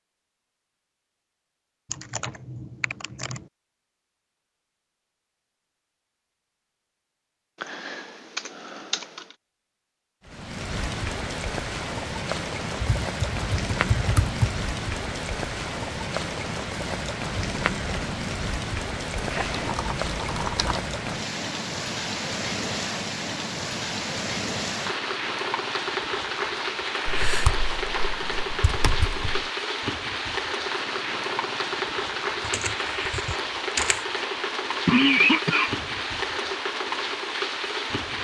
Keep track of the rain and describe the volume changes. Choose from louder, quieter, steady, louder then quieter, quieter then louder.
steady.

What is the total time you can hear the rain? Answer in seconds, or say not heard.
28 s.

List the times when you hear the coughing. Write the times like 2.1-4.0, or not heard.
34.1-35.9.